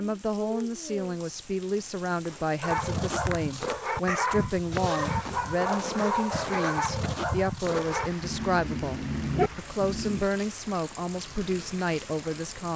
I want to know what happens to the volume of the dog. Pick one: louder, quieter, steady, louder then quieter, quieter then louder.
steady.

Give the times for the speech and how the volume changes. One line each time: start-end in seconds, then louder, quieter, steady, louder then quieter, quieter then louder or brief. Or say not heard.
0.0-12.7 steady.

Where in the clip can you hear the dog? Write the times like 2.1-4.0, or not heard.
2.6-10.2.